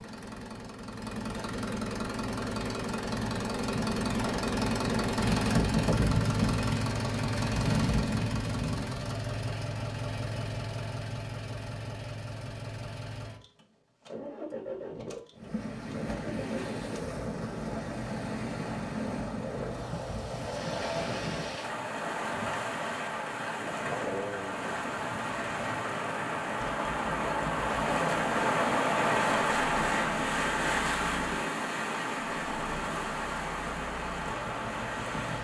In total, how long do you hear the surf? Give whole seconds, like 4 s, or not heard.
20 s.